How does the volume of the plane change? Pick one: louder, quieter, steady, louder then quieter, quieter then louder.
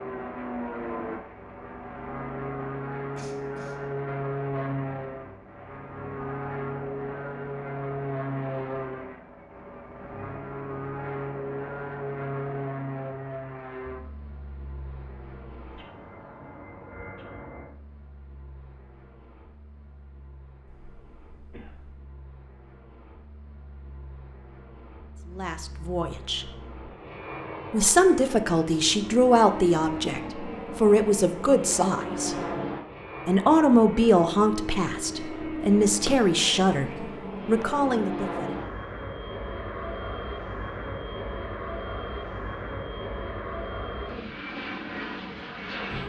quieter then louder.